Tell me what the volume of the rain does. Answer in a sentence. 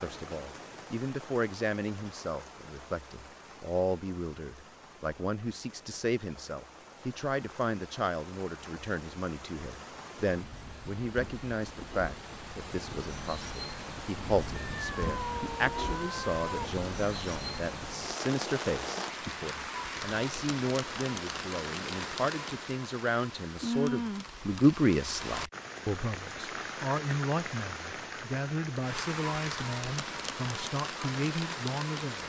The volume of the rain goes up.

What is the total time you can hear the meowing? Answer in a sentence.
You can hear the meowing for 2 seconds altogether.